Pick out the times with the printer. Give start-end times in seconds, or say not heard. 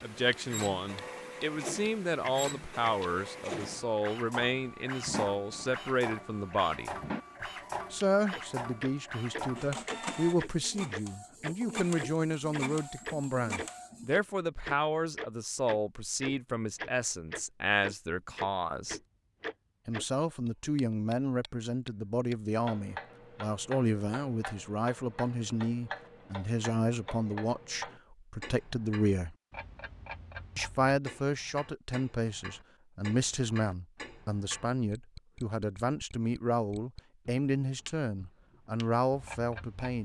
0.0-14.2.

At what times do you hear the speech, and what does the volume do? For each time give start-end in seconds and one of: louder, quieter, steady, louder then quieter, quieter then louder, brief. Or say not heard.
0.0-7.0 steady
7.9-19.0 steady
19.9-29.4 steady
30.6-40.0 steady.